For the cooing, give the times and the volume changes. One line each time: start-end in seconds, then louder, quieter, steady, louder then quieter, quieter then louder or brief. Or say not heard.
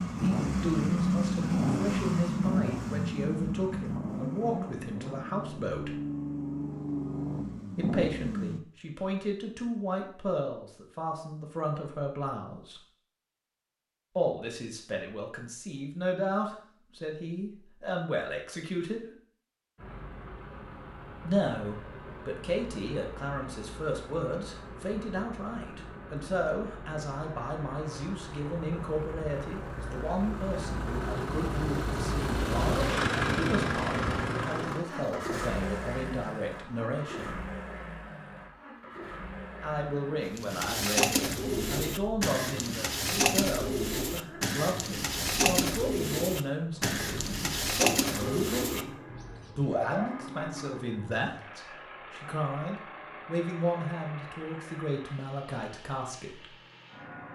40.4-50.1 steady.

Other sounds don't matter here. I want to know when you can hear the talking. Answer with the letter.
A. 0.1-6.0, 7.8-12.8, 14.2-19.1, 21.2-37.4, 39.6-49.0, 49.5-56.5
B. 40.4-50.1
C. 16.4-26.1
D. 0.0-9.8
A.